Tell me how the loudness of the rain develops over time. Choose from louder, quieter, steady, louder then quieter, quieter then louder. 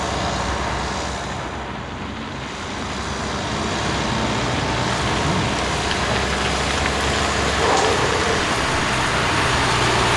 louder.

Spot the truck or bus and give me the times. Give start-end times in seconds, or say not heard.
0.0-10.1.